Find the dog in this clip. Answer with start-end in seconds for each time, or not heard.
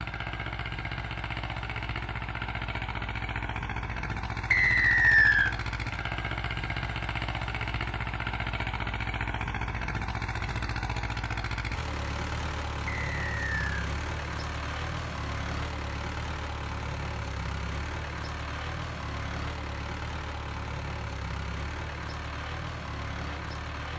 not heard.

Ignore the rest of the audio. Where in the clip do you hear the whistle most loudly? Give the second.
5 s.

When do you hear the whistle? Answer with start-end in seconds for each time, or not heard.
4.5-5.5, 12.8-13.7.